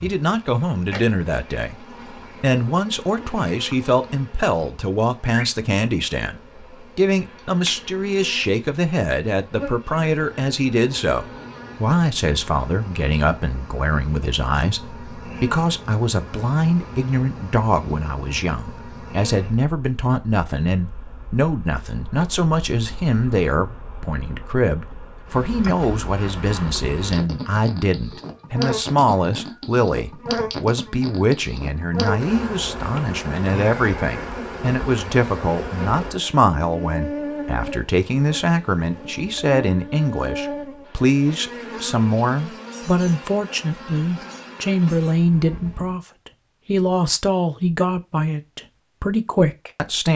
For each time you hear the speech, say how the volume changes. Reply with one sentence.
You can hear the speech from 0.0 to 50.1 s, at a steady volume.